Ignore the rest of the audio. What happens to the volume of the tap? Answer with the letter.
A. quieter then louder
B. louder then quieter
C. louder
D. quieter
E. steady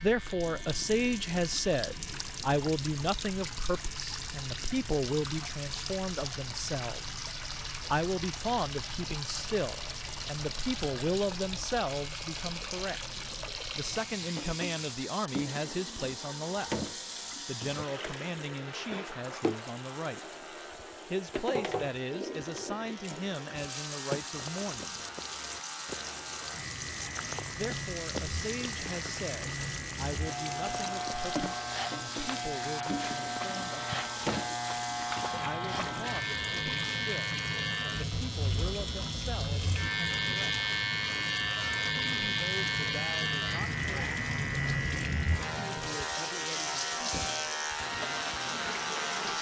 E.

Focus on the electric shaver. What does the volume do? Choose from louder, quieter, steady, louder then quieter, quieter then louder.
louder.